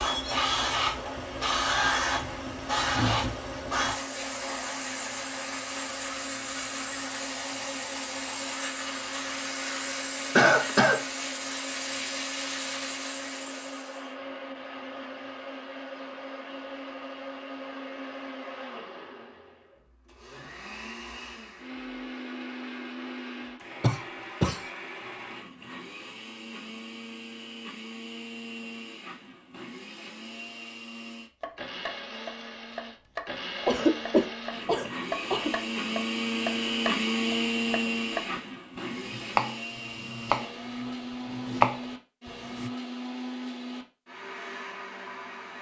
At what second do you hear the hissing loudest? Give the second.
2 s.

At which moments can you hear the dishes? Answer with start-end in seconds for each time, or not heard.
not heard.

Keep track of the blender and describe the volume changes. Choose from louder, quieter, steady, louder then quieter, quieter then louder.
louder.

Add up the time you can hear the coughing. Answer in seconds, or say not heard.
3 s.